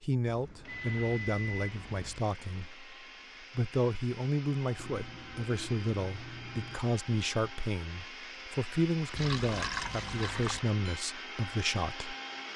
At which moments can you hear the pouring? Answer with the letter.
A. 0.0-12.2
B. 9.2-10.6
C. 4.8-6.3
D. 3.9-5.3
B.